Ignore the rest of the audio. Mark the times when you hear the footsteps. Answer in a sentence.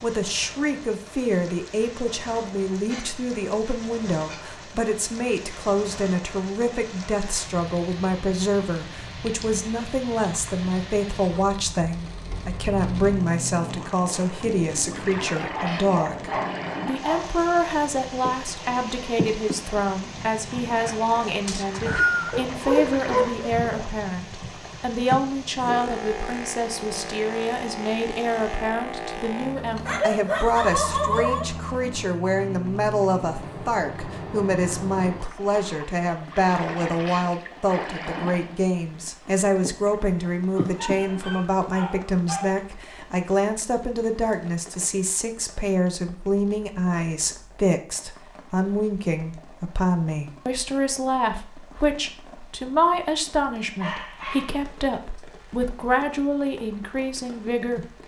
The footsteps can't be heard in this clip.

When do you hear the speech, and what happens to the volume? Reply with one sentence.
You can hear the speech from 0.0 to 57.9 s, at a steady volume.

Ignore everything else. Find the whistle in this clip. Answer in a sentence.
The whistle can be heard from 21.4 to 22.4 s.